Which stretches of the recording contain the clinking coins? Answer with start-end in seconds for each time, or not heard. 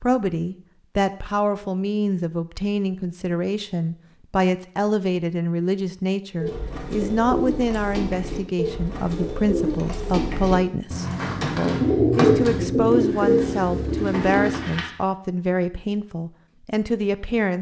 not heard.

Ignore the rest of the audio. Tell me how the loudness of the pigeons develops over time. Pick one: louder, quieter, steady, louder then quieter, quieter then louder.
louder.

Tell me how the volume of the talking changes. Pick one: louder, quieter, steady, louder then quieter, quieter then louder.
steady.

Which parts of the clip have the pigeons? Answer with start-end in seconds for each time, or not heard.
6.4-14.9.